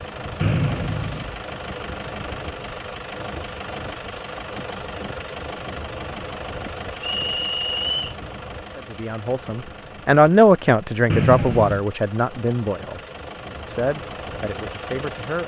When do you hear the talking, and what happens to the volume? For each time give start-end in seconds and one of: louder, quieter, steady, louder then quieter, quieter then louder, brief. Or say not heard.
8.8-13.0 louder then quieter
13.7-15.4 brief.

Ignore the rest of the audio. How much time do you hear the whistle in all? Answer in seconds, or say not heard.
3 s.